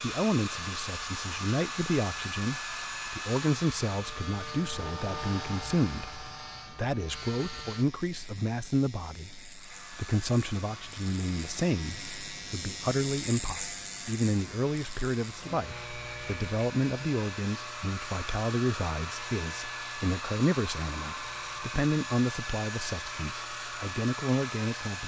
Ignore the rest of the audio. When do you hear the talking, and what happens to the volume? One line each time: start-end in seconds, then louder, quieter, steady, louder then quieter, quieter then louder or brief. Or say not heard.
0.0-25.0 steady.